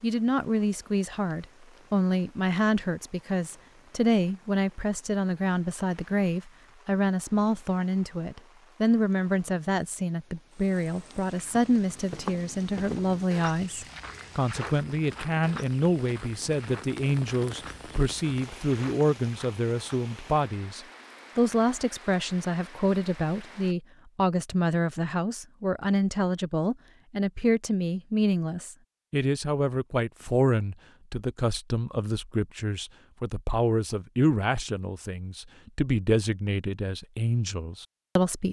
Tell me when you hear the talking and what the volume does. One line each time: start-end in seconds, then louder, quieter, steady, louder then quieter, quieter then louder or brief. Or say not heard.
0.0-38.4 steady.